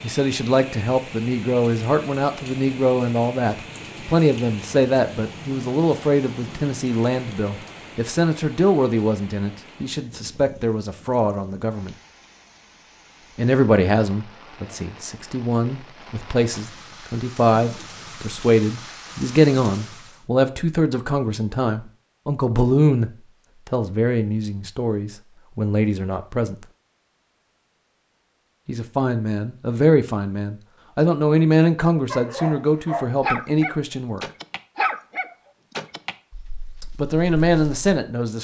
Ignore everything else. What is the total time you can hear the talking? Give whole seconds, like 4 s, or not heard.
32 s.